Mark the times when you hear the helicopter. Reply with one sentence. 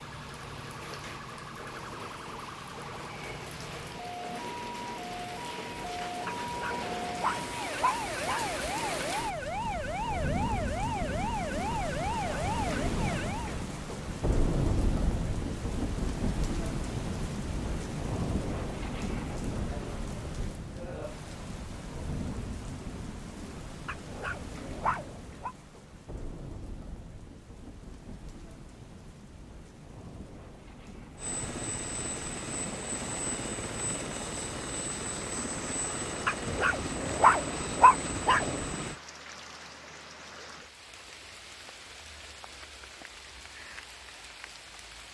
You can hear the helicopter from 31.1 to 39.0 s.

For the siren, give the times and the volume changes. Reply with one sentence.
The siren can be heard from 0.0 to 13.6 s, getting louder.